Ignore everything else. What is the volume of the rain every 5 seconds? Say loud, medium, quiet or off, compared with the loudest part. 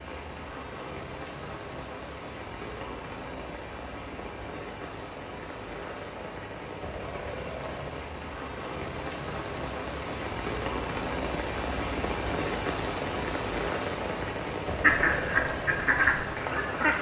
medium, medium, loud, loud.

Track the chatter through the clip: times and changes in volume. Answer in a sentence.
You can't hear the chatter here.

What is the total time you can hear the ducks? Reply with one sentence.
The ducks can be heard for 2 seconds in total.